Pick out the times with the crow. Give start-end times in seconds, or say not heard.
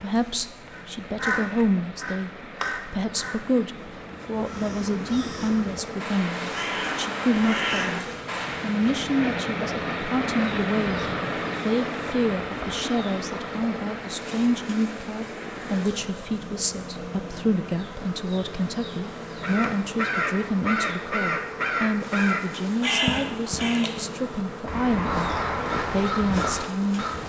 0.7-8.9, 19.4-27.2.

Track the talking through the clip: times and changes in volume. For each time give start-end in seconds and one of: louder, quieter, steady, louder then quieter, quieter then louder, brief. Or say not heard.
0.0-27.1 steady.